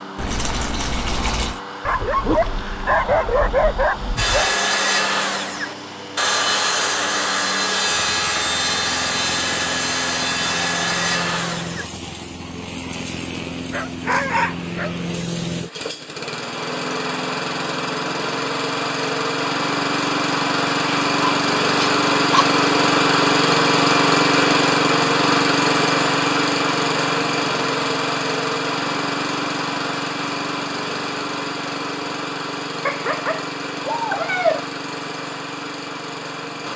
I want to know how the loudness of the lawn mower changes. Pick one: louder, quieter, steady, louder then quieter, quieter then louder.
louder then quieter.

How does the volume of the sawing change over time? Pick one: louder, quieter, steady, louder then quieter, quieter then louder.
steady.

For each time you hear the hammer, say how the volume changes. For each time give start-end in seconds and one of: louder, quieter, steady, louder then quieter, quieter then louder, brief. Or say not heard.
not heard.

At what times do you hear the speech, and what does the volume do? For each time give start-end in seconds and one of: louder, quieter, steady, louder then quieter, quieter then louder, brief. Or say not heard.
not heard.